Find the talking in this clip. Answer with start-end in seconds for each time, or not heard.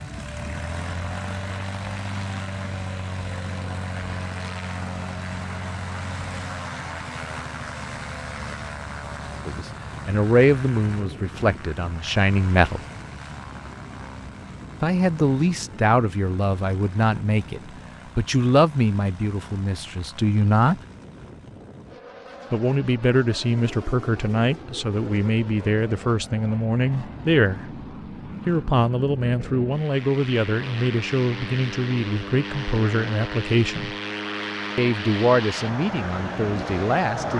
9.4-12.8, 14.8-20.8, 22.5-27.8, 28.4-34.0, 34.8-37.3.